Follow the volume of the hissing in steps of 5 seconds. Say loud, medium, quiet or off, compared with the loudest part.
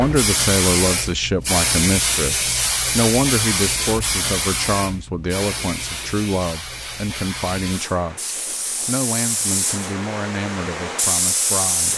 loud, medium, loud.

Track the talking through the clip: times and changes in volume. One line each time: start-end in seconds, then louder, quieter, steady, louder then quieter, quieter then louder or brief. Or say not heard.
0.0-11.9 quieter.